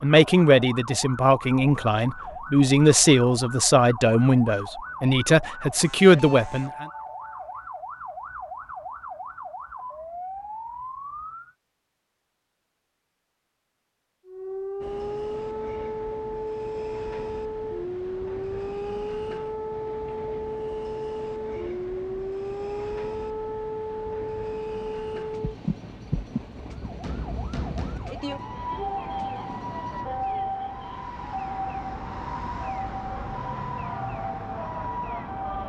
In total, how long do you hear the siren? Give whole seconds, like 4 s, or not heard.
33 s.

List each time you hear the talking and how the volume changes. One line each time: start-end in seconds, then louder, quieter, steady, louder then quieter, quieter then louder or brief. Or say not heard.
0.0-6.8 steady.